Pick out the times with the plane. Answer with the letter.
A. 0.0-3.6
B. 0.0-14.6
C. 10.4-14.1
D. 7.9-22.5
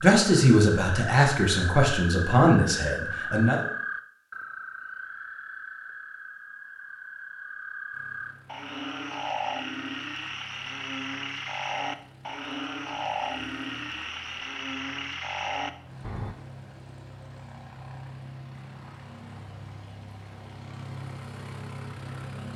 D.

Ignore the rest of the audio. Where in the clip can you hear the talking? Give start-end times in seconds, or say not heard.
0.0-3.6.